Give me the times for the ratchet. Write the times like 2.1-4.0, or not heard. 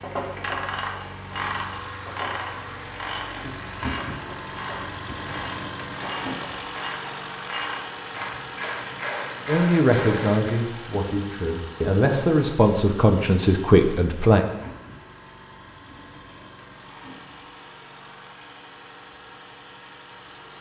0.0-10.6.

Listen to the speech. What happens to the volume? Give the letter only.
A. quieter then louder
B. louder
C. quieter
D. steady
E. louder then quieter
A.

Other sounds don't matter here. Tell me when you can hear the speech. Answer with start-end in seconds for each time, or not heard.
9.4-14.4.